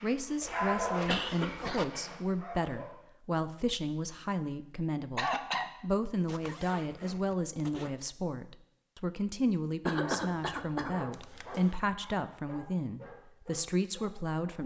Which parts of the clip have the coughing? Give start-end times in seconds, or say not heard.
1.1-1.9, 5.2-5.7, 9.8-10.9.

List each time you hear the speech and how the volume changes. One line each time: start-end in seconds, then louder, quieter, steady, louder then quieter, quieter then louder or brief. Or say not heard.
0.0-14.6 steady.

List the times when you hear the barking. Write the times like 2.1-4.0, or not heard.
0.0-3.0, 9.9-14.6.